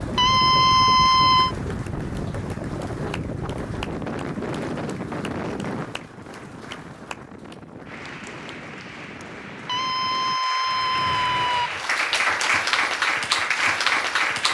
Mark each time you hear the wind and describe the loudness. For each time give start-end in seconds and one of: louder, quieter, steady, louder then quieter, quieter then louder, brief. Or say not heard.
0.0-10.4 quieter.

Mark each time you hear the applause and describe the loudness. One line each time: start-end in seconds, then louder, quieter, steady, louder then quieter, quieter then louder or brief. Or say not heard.
0.0-14.4 louder.